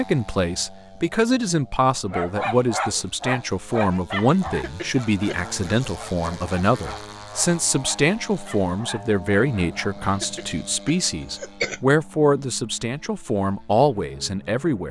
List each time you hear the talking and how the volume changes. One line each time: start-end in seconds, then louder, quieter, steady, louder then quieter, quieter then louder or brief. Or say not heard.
0.0-14.8 steady.